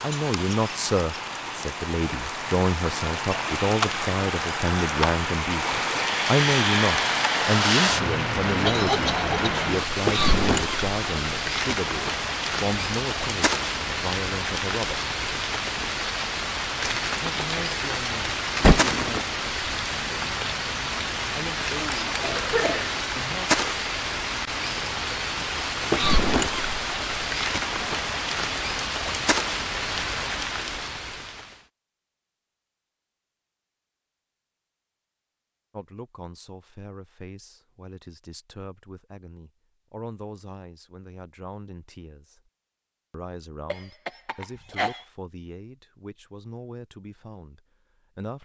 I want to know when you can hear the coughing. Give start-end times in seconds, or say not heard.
8.7-9.6, 22.2-22.9, 43.6-45.0.